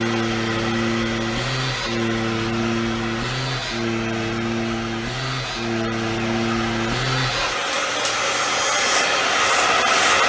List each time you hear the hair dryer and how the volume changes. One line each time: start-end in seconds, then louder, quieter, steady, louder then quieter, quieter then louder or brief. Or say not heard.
0.0-10.2 louder.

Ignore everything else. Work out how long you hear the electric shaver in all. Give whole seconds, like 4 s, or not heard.
10 s.